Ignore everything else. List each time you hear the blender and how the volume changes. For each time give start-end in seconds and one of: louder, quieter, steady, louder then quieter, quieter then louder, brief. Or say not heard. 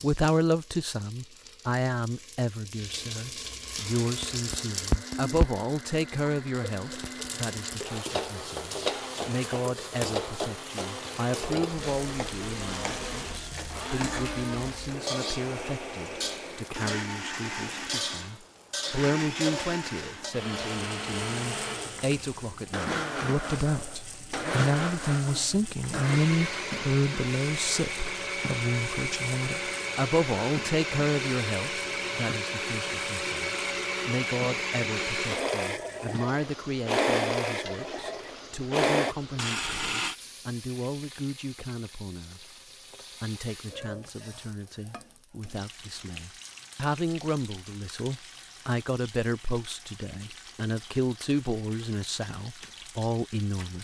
3.8-40.1 louder.